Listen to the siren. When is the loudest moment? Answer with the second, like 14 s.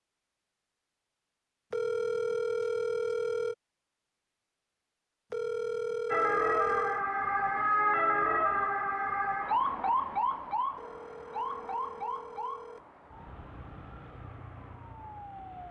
8 s.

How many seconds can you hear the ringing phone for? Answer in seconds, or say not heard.
6 s.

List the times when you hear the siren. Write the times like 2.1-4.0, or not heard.
6.1-15.6.